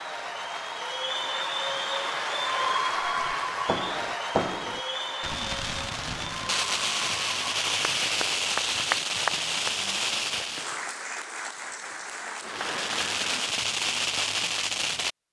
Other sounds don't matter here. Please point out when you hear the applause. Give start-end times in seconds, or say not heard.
0.0-13.6.